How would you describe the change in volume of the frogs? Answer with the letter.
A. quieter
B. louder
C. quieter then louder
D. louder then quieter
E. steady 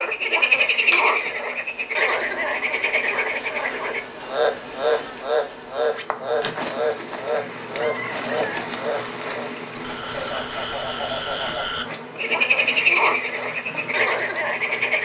C.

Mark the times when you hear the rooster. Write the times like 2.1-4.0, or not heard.
7.8-8.7.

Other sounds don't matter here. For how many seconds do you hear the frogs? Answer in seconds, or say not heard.
15 s.